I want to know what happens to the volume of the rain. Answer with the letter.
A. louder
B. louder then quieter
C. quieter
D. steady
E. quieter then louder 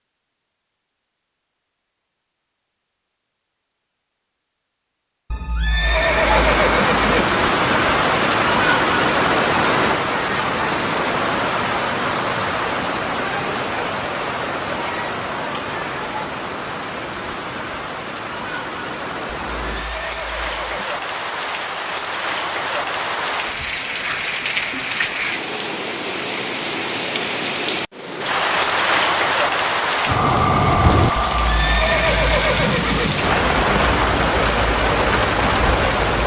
E.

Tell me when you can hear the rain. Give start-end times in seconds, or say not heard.
5.8-36.2.